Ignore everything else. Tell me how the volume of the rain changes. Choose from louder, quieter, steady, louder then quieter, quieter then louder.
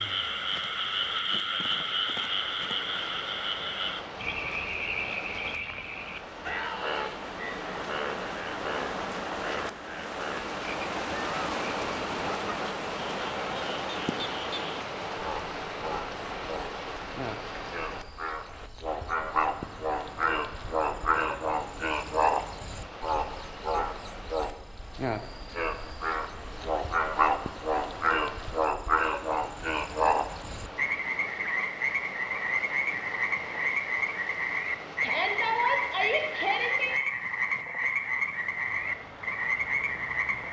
louder then quieter.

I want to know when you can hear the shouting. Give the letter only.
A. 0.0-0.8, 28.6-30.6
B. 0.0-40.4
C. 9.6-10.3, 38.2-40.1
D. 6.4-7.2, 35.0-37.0
D.